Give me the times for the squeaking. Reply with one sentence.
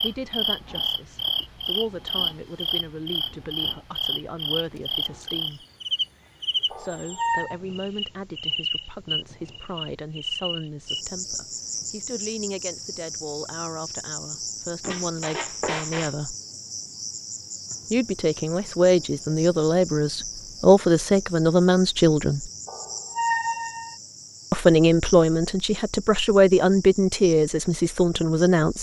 You can hear the squeaking from 6.7 to 7.5 s, from 14.8 to 16.1 s and from 22.6 to 23.9 s.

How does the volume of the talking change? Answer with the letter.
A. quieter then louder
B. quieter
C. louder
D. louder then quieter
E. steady
C.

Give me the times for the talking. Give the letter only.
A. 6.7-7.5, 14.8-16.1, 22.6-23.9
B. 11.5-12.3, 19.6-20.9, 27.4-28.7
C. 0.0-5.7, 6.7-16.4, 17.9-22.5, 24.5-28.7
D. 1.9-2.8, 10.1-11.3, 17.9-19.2
C.